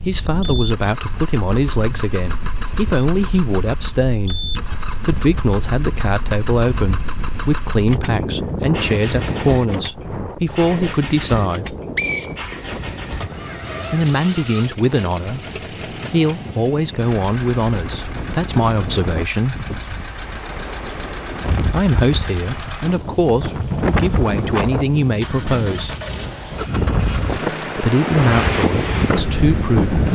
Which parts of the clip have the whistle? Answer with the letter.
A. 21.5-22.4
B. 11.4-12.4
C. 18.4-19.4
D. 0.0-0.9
B.